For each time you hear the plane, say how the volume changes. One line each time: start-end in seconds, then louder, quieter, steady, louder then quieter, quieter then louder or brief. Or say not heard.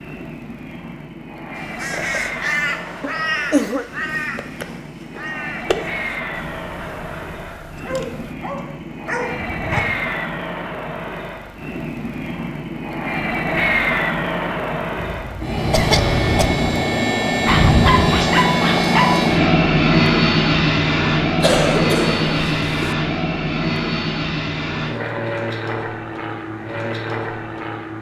0.0-27.9 louder then quieter.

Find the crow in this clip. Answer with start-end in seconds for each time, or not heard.
1.6-10.1.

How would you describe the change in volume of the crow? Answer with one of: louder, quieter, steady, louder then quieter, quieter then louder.
quieter.